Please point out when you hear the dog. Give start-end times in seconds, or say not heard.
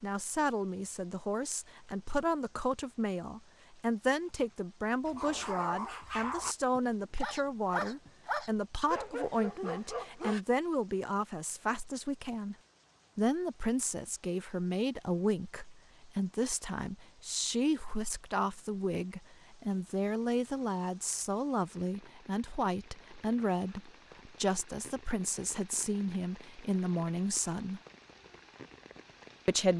5.0-10.4.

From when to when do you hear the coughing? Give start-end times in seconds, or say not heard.
not heard.